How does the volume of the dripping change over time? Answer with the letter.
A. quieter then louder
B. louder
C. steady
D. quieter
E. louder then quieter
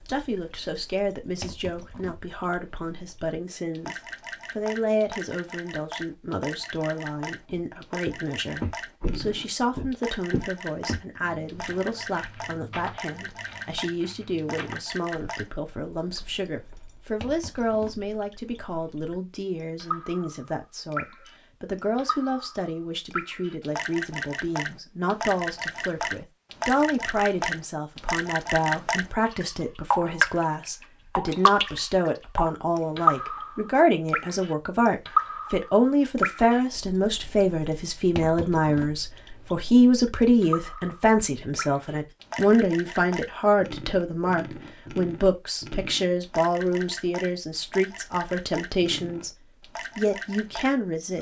E.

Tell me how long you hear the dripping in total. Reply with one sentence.
You can hear the dripping for 51 seconds altogether.